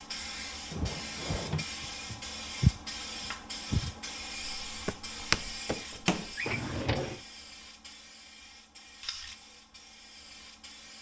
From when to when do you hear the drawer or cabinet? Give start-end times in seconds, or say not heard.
0.7-1.6, 6.3-7.2.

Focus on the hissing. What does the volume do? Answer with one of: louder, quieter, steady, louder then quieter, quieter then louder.
quieter.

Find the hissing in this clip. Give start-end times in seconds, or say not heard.
0.0-10.9.